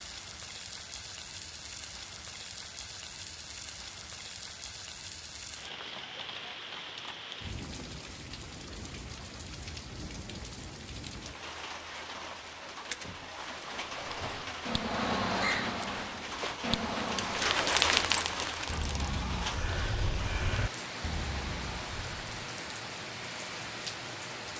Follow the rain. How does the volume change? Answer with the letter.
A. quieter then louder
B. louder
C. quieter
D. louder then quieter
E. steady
D.